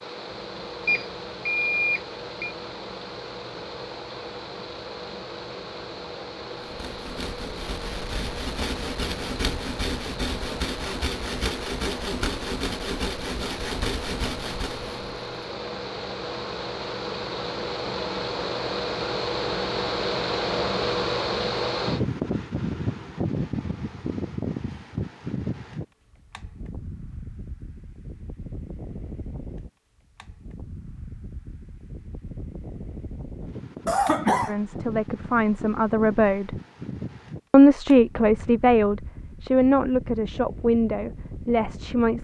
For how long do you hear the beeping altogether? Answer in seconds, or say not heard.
2 s.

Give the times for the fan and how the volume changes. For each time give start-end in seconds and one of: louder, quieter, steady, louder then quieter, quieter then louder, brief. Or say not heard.
0.0-42.2 louder then quieter.